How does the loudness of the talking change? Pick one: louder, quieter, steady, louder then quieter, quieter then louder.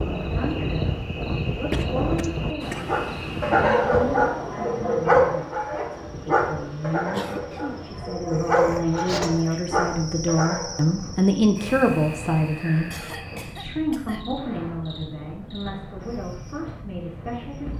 louder then quieter.